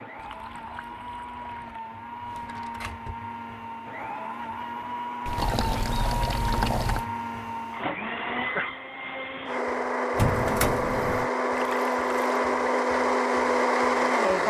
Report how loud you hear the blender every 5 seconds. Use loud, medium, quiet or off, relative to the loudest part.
quiet, medium, loud.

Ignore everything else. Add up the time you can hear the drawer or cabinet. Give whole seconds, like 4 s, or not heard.
2 s.